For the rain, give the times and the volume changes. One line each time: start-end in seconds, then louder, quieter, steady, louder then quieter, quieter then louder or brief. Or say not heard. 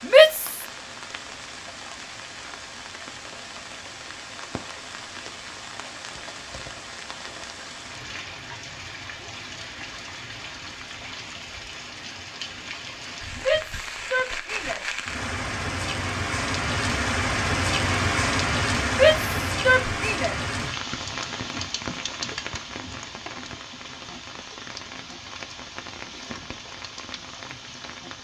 0.0-28.1 louder then quieter.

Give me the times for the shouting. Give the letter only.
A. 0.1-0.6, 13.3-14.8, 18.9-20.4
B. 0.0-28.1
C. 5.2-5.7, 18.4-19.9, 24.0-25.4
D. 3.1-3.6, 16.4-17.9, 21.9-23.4
A.